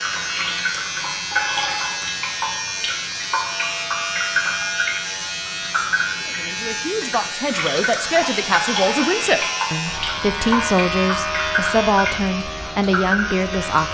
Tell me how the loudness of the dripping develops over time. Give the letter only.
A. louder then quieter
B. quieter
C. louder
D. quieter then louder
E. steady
E.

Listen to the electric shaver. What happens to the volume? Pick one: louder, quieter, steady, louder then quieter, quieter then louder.
steady.